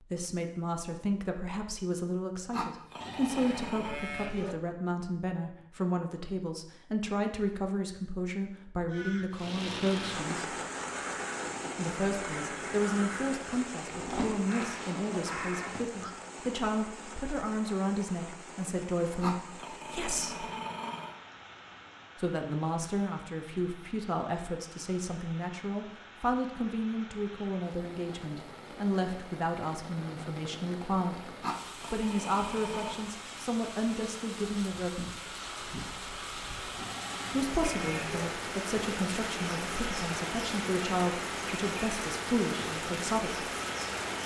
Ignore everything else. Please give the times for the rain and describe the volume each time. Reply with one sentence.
You can hear the rain from 9.3 to 44.2 s, getting quieter then louder.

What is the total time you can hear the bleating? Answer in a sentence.
The bleating can be heard for 3 seconds in total.